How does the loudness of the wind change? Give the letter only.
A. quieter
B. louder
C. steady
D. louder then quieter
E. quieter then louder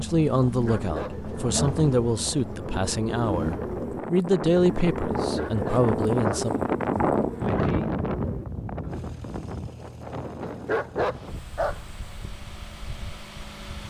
D.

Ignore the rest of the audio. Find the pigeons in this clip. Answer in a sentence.
The pigeons can be heard from 0.8 to 9.1 s.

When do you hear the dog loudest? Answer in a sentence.
The volume of the dog peaks at 11 seconds.